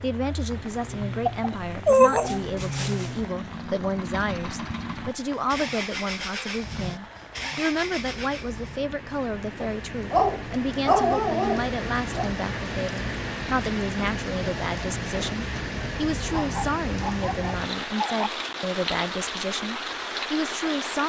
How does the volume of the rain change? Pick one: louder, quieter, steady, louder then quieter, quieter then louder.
louder.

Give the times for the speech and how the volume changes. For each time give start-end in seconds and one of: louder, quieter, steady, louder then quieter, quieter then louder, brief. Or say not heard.
0.0-21.0 steady.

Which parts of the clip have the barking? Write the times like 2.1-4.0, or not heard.
1.2-3.1, 9.6-12.3, 16.2-18.3.